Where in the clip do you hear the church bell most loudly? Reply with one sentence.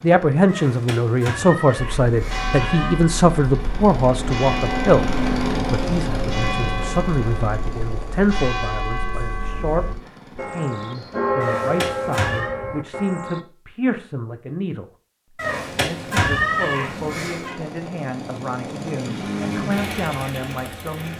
The volume of the church bell peaks at 11 seconds.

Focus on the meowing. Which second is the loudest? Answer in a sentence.
The volume of the meowing peaks at 16 seconds.